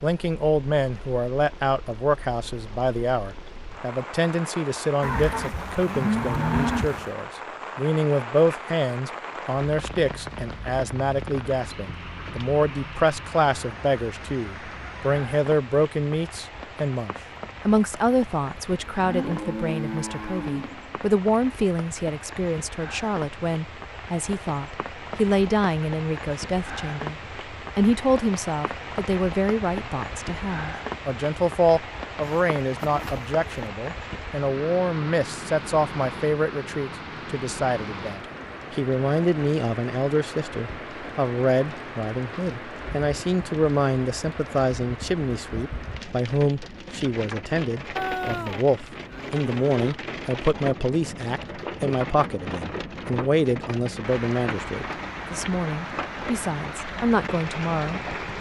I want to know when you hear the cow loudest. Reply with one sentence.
The volume of the cow peaks at 7 seconds.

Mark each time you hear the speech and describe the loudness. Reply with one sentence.
You can hear the speech from 0.0 to 58.1 s, at a steady volume.